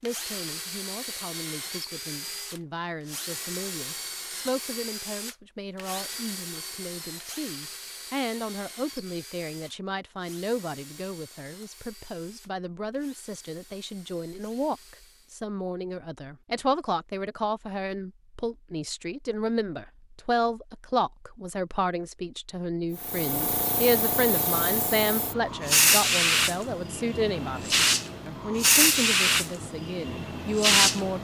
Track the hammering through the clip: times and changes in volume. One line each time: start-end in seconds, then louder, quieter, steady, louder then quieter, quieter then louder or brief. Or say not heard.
not heard.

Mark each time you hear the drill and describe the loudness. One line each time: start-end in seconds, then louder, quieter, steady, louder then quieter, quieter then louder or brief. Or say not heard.
0.0-15.4 quieter.